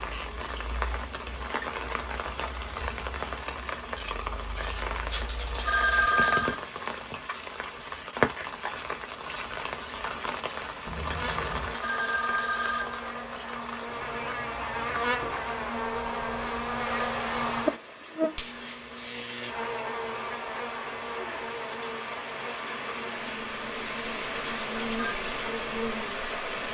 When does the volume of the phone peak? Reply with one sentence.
The volume of the phone peaks at 6 seconds.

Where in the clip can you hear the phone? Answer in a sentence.
You can hear the phone from 5.0 to 6.6 s, from 11.4 to 13.2 s and from 24.4 to 25.2 s.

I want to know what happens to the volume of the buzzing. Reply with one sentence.
The loudness of the buzzing goes up, then down.